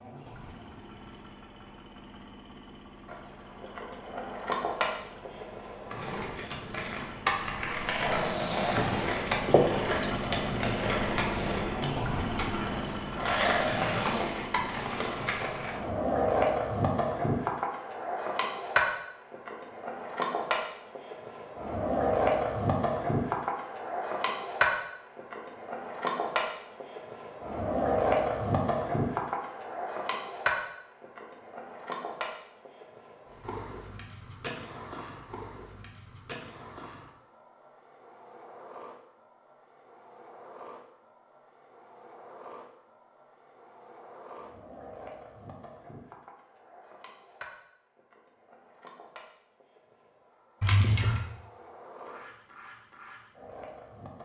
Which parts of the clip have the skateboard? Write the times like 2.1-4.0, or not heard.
3.0-54.2.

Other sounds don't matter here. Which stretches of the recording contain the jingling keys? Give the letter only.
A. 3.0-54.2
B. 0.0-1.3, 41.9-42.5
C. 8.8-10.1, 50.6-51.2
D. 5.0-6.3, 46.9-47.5
C.